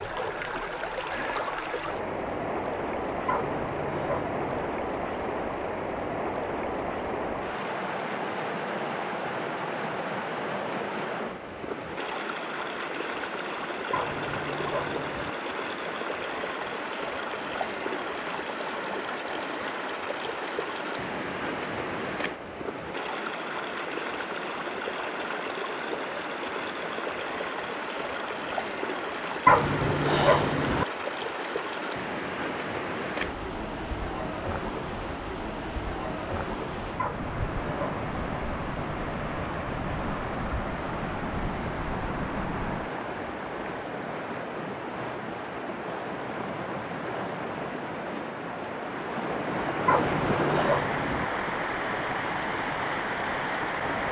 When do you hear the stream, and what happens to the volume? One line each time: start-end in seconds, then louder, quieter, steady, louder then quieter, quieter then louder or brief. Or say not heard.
0.0-54.0 steady.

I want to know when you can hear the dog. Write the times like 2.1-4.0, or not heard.
3.2-4.7, 13.9-15.3, 29.4-30.9, 37.0-38.4, 49.9-51.2.